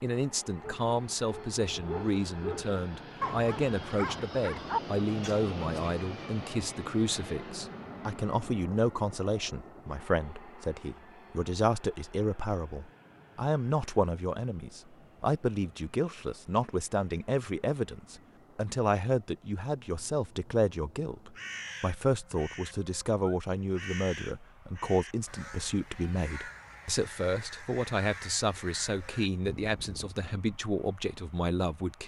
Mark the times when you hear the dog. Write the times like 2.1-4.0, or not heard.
0.6-5.9.